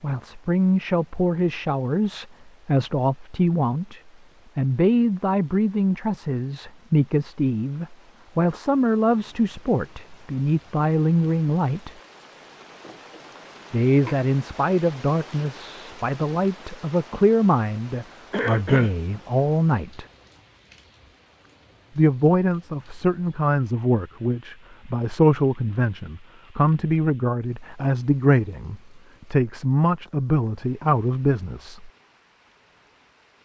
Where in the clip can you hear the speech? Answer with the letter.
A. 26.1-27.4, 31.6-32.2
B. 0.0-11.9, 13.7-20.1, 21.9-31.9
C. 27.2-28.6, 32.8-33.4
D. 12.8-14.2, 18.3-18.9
B.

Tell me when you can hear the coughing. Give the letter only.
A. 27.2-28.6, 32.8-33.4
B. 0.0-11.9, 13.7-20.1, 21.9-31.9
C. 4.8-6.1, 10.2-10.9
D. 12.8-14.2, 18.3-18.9
D.